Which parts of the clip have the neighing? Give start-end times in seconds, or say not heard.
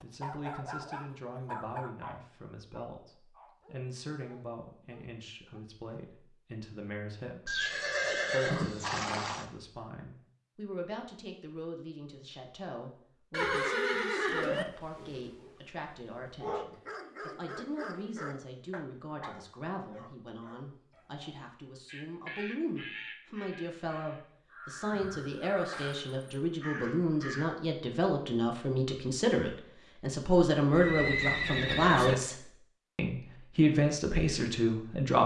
7.5-9.4, 13.3-14.7, 30.7-32.1.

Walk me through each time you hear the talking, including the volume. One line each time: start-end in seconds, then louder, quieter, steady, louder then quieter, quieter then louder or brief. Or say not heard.
0.0-35.2 louder.